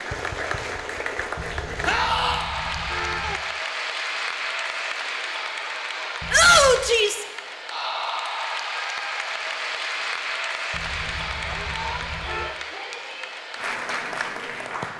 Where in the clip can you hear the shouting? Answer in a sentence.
You can hear the shouting from 1.9 to 2.5 s, from 6.3 to 7.2 s and from 11.3 to 13.3 s.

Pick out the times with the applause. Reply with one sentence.
You can hear the applause from 0.0 to 14.9 s.